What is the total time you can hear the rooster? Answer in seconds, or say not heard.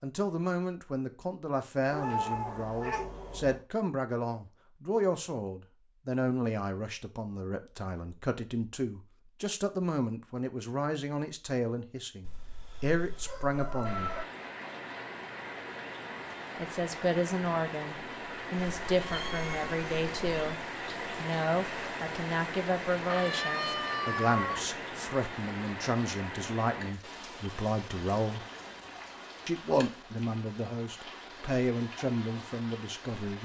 4 s.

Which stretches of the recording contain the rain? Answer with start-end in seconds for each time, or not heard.
13.8-33.4.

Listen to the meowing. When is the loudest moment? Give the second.
2 s.